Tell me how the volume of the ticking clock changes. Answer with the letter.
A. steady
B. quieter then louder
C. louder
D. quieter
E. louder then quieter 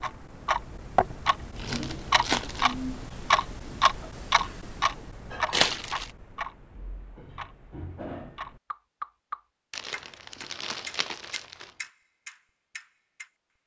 D.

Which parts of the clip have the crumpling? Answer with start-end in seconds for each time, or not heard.
1.6-2.8, 5.5-6.1, 9.7-11.7.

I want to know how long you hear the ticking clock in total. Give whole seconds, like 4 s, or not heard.
13 s.